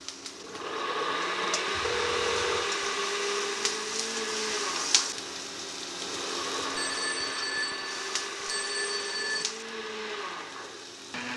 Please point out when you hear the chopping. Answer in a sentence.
The chopping can't be heard in this clip.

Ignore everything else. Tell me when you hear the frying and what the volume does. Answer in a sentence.
The frying can be heard from 0.0 to 11.3 s, getting louder then quieter.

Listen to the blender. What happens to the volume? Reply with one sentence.
The loudness of the blender goes down.